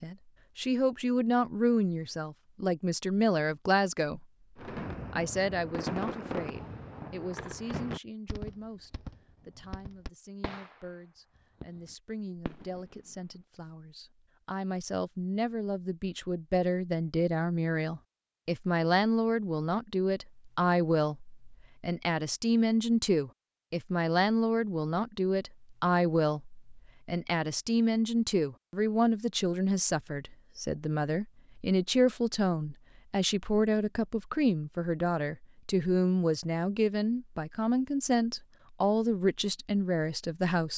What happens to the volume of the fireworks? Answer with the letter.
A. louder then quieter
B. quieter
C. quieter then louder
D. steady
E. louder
B.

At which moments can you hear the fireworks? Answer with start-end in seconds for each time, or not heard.
4.5-13.2.